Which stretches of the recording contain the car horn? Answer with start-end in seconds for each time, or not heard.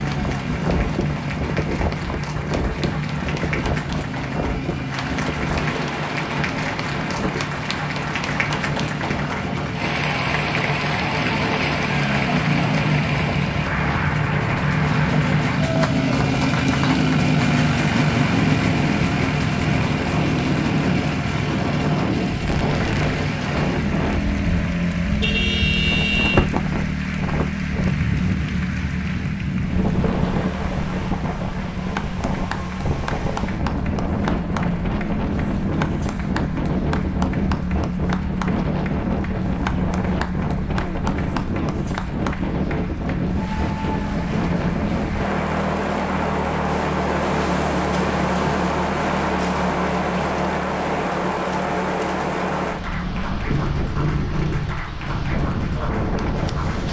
25.2-26.4.